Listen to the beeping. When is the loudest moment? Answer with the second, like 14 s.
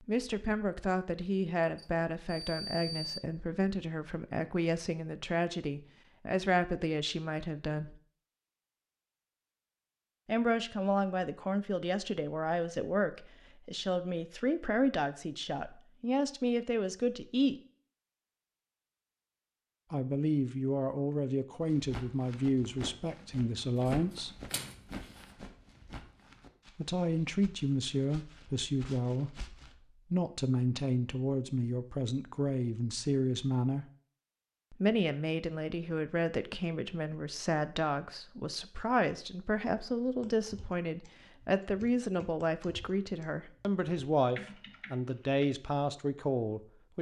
3 s.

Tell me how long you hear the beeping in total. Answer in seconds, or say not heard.
2 s.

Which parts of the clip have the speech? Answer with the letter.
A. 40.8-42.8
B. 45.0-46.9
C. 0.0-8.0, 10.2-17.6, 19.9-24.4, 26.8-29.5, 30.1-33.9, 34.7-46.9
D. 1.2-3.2
C.